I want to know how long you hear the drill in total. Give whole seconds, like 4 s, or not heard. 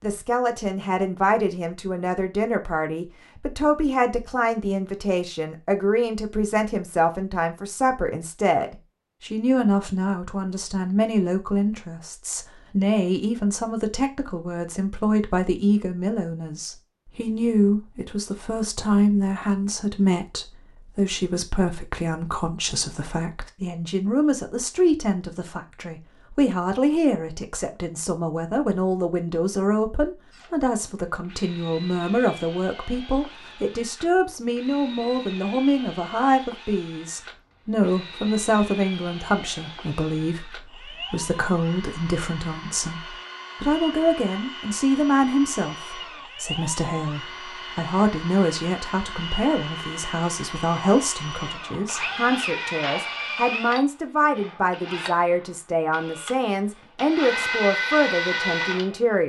29 s.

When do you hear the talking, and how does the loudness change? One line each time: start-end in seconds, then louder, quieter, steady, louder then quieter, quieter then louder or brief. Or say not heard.
0.0-59.2 steady.